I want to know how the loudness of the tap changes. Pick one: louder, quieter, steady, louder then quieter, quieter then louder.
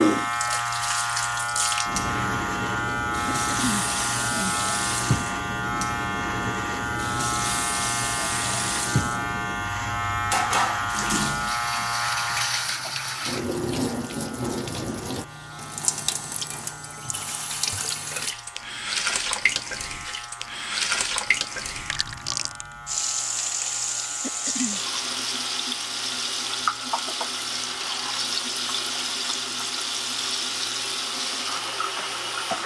steady.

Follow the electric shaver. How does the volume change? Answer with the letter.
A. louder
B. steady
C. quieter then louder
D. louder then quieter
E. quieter
E.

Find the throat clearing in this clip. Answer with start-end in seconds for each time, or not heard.
3.2-4.5, 24.2-24.8.